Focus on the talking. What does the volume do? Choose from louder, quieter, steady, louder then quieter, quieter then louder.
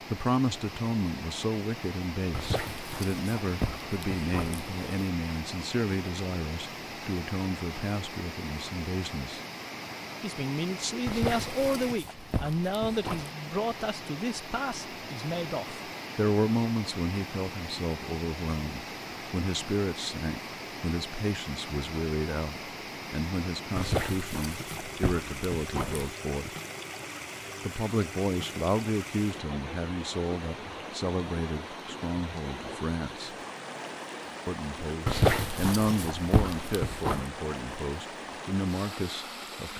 steady.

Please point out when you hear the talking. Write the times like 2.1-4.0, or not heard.
0.1-9.4, 10.2-26.5, 27.6-33.4, 34.5-39.7.